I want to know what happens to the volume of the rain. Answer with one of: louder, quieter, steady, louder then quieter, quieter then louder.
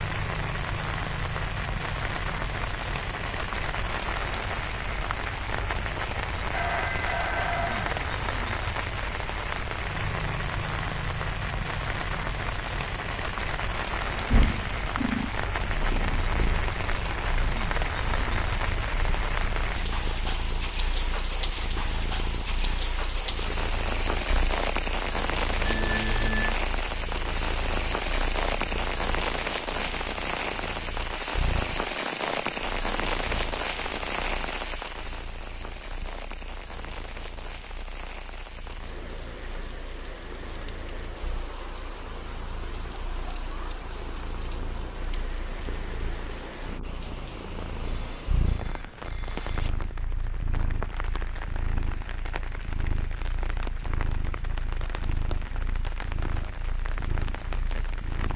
quieter.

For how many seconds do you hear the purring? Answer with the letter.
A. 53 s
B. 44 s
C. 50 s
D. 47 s
B.